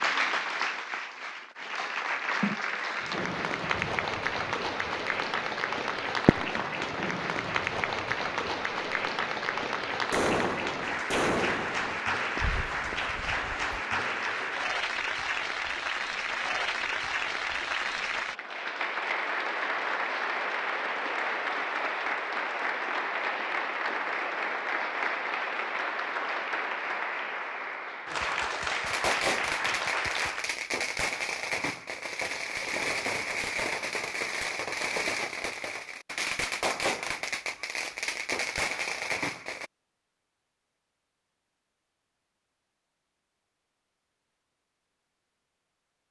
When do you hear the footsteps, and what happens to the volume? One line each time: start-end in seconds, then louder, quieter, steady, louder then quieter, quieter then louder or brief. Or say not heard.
not heard.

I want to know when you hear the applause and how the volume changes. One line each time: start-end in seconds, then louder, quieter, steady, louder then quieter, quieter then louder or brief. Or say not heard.
0.0-30.6 steady.